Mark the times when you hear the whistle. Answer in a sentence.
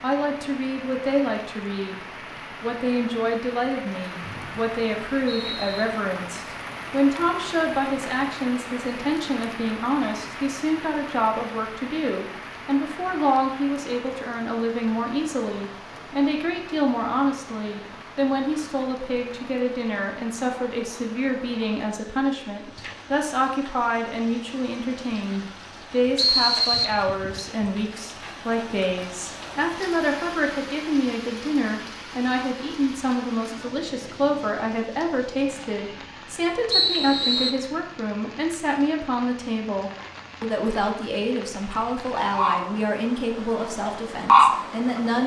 You can hear the whistle from 4.2 to 5.8 s, from 26.1 to 27.4 s and from 36.7 to 37.5 s.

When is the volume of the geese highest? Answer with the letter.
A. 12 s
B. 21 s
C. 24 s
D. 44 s
D.